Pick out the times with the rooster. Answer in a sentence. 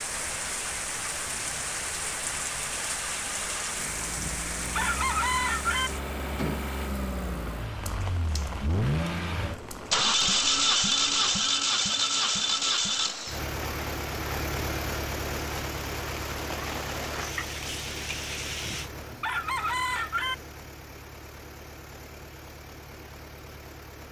You can hear the rooster from 4.2 to 5.9 s and from 18.6 to 20.4 s.